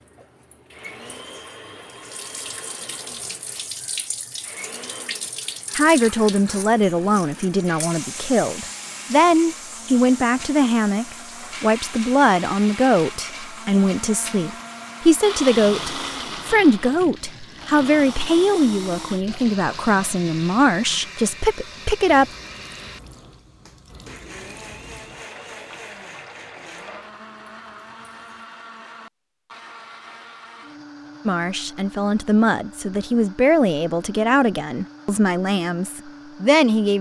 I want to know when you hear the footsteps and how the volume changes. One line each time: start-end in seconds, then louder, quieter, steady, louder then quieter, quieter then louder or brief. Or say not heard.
not heard.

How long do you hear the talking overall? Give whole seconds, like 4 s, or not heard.
22 s.